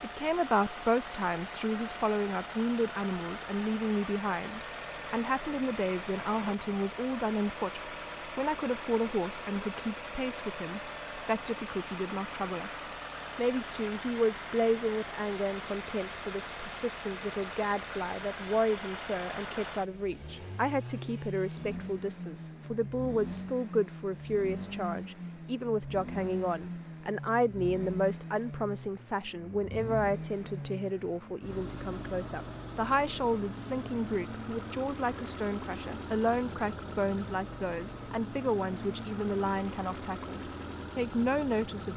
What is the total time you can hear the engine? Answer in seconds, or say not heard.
42 s.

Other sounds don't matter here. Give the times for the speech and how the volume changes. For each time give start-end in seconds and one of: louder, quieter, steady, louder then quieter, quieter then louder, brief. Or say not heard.
0.0-41.9 steady.